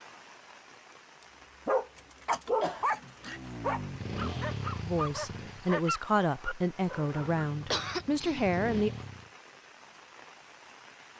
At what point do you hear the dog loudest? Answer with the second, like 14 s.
2 s.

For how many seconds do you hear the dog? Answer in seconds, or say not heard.
6 s.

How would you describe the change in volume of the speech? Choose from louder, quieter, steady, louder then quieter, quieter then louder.
steady.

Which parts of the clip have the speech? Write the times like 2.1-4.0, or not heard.
4.8-8.9.